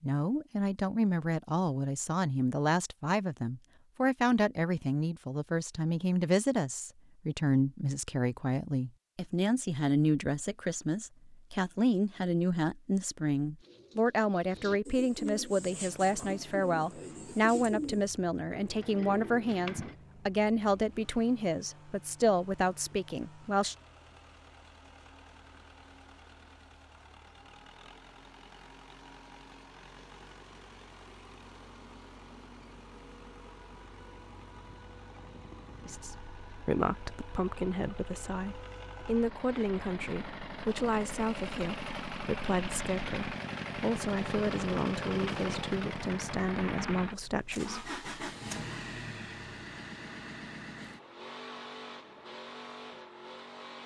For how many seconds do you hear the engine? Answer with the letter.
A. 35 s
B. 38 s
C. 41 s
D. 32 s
B.